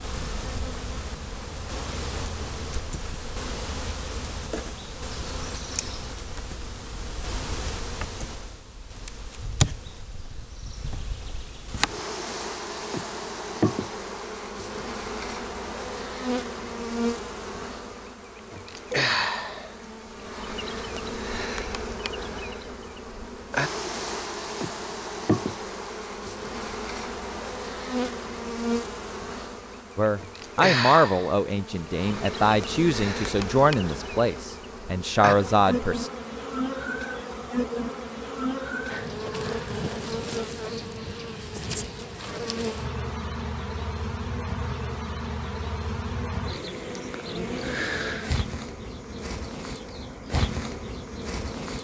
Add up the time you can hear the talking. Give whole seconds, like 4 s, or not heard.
6 s.